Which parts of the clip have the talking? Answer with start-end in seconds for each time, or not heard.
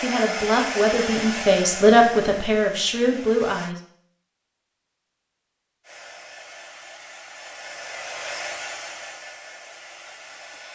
0.0-3.8.